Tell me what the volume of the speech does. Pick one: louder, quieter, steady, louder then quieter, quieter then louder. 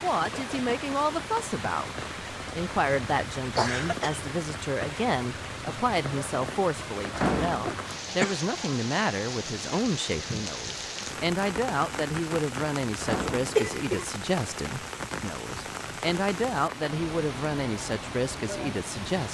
steady.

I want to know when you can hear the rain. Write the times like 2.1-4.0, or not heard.
0.0-19.2.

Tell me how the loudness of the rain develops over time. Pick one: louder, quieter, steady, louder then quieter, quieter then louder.
steady.